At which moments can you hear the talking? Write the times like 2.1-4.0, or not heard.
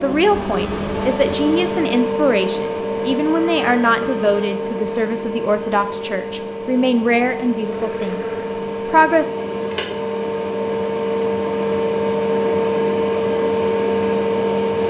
0.0-9.2.